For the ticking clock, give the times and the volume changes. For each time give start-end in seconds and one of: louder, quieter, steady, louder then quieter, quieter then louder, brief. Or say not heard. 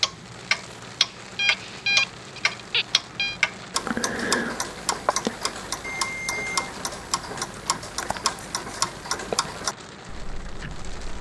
0.0-11.1 quieter.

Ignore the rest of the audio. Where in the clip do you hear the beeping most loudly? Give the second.
2 s.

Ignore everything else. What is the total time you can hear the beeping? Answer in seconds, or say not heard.
3 s.